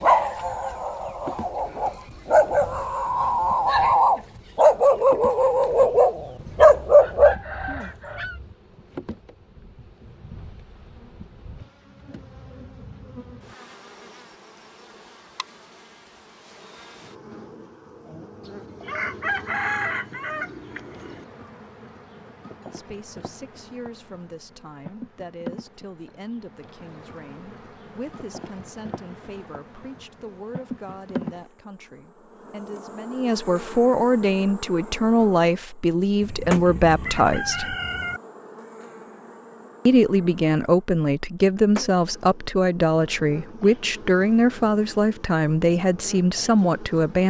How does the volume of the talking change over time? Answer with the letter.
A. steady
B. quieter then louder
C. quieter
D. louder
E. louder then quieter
D.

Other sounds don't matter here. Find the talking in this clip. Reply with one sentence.
The talking can be heard from 22.7 to 37.8 s and from 39.9 to 47.2 s.